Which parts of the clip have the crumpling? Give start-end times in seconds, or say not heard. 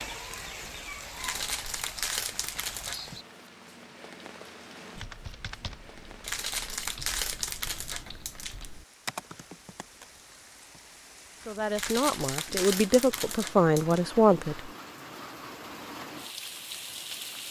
1.2-3.0, 6.2-8.7, 11.8-14.0.